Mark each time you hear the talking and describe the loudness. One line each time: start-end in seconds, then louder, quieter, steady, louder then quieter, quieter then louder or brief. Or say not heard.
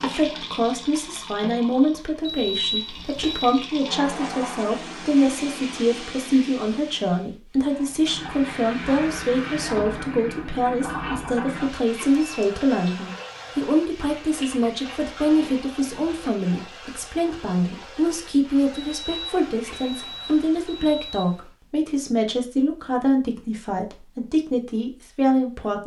0.0-25.8 steady.